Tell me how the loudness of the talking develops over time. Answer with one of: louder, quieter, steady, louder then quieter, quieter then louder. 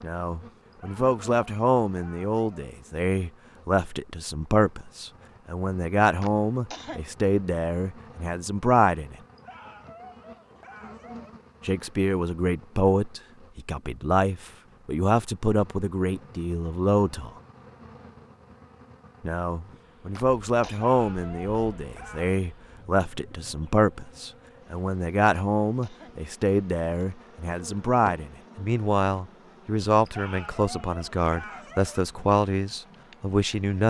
steady.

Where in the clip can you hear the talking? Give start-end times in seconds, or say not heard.
0.0-9.2, 11.7-17.3, 19.2-33.8.